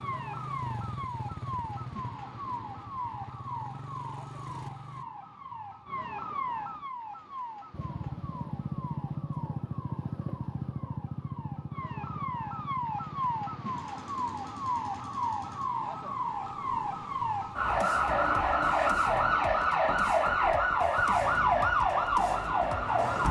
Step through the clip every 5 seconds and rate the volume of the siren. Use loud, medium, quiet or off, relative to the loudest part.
quiet, quiet, medium, loud, loud.